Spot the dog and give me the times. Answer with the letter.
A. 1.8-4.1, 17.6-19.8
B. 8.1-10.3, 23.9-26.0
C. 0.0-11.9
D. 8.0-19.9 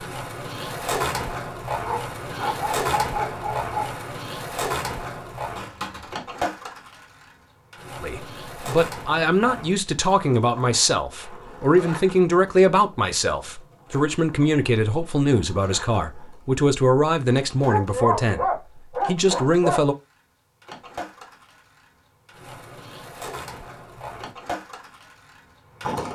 A.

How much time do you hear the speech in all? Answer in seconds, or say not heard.
12 s.